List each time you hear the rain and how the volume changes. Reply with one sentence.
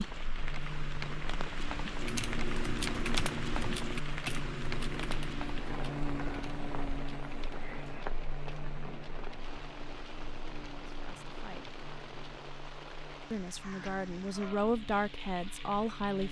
The rain can be heard from 0.0 to 16.2 s, getting quieter.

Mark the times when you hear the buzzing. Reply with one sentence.
You can hear the buzzing from 0.1 to 16.2 s.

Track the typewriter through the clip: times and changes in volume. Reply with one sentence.
The typewriter can be heard from 1.9 to 12.4 s, getting quieter.